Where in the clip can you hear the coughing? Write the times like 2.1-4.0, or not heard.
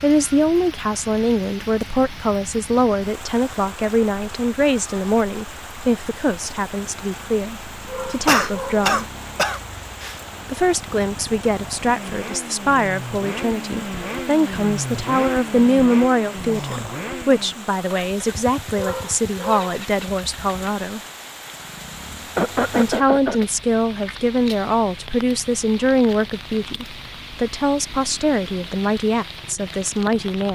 8.1-10.2, 22.4-23.4.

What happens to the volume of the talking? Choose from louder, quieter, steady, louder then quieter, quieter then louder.
steady.